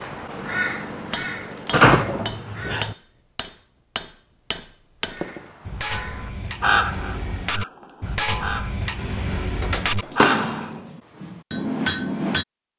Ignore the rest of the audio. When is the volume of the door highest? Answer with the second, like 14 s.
2 s.